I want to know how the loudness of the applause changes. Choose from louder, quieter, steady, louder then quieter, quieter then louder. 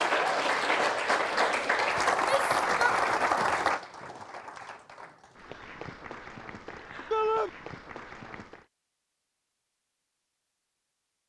quieter.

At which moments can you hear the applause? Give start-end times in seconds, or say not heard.
0.0-8.7.